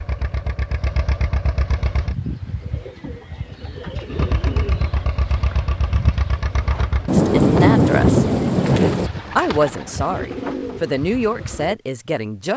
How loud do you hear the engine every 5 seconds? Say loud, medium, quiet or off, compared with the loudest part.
loud, loud, off.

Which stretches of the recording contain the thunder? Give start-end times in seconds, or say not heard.
7.0-9.1.